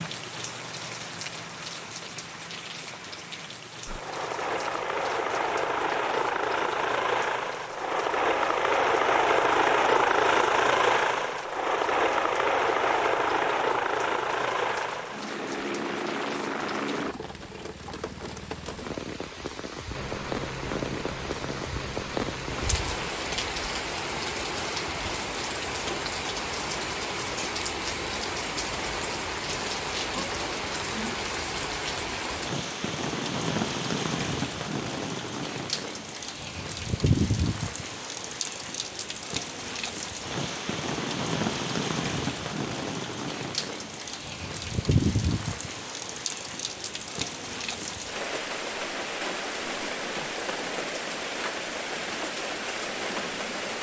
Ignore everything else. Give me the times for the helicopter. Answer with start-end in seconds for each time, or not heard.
3.9-17.1, 19.9-23.2.